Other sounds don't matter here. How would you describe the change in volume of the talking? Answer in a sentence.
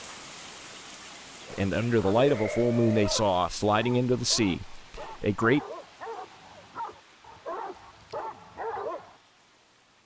The loudness of the talking goes down.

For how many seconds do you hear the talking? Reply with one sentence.
You can hear the talking for 4 seconds altogether.